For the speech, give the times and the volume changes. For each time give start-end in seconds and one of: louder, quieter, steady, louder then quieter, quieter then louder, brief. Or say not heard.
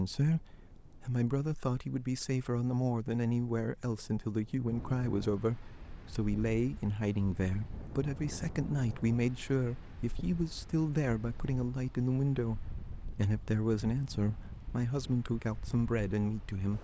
0.0-16.7 steady.